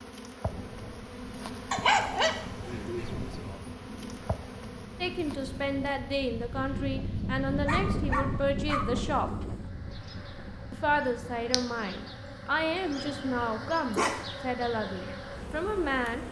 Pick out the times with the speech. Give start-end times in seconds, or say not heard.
5.0-9.3, 10.7-16.2.